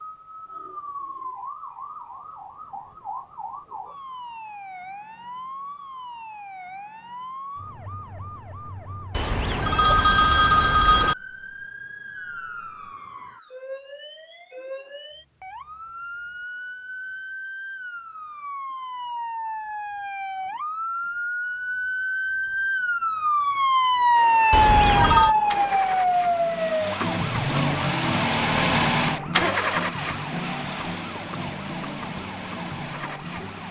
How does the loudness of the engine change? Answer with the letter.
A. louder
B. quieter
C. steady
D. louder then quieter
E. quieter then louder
D.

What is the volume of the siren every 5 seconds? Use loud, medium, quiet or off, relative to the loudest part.
quiet, quiet, quiet, quiet, loud, loud, quiet.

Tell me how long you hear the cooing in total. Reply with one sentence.
You can't hear the cooing here.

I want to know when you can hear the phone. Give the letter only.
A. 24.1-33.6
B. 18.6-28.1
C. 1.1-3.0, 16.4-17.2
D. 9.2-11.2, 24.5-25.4
D.